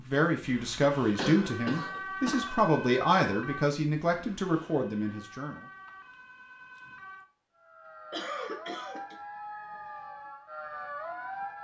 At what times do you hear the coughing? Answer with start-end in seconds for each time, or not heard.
1.1-2.5, 8.1-9.2.